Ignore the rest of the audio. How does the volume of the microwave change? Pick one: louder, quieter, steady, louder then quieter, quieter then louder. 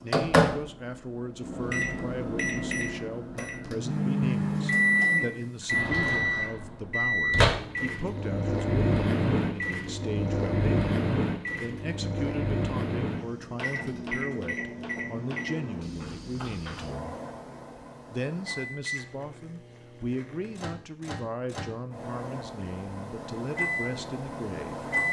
quieter.